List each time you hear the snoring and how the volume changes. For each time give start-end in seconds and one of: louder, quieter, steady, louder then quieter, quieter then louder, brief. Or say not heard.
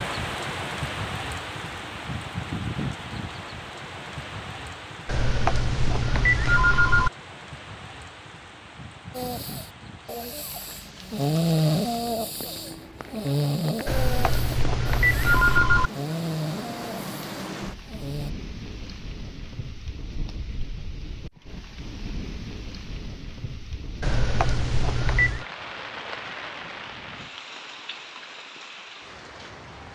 9.1-18.3 louder then quieter.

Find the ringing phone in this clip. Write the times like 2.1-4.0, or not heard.
5.0-7.1, 13.8-15.9, 24.0-25.4.